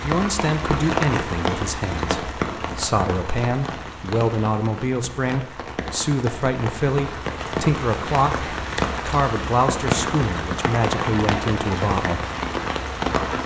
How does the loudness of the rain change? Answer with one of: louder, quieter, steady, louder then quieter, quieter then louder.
quieter then louder.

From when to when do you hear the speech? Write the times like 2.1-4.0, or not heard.
0.0-12.3.